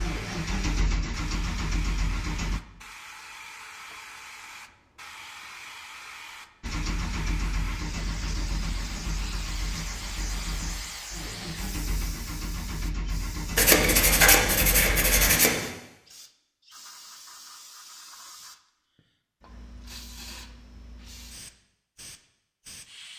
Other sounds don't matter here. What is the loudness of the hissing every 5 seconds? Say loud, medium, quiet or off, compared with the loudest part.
loud, loud, loud, medium, medium.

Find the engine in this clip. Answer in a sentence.
The engine can be heard from 0.0 to 2.6 s and from 6.6 to 15.4 s.